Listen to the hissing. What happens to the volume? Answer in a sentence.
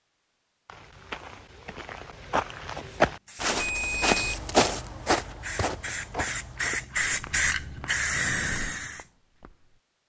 The volume of the hissing goes up.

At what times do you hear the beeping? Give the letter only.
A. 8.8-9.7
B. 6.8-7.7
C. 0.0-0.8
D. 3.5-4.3
D.